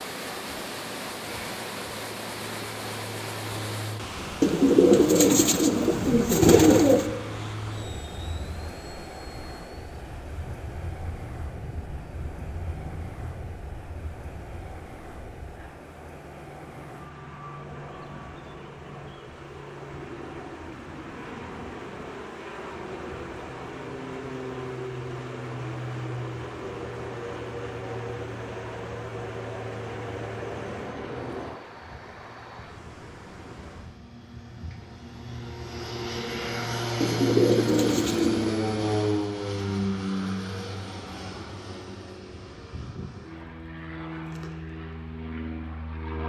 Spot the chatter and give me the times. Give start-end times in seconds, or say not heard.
not heard.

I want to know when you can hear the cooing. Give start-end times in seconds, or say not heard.
4.4-7.0, 37.0-38.5.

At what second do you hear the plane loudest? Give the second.
39 s.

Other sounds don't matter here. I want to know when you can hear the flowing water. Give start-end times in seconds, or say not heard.
0.0-34.0.